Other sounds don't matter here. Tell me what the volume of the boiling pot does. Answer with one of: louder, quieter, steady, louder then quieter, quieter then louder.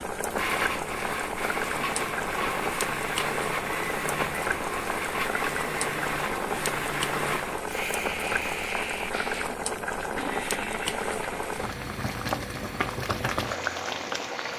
steady.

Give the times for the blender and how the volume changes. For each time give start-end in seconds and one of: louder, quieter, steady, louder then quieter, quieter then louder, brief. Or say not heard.
0.1-14.5 quieter.